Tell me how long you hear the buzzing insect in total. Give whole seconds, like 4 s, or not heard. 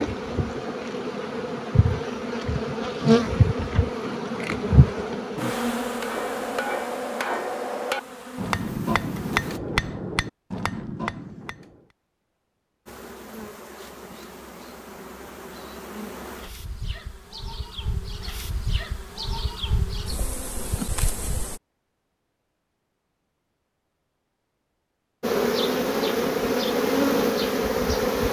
21 s.